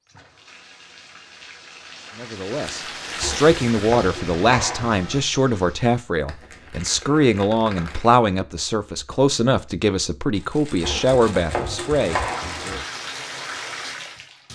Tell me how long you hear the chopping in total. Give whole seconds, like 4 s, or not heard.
4 s.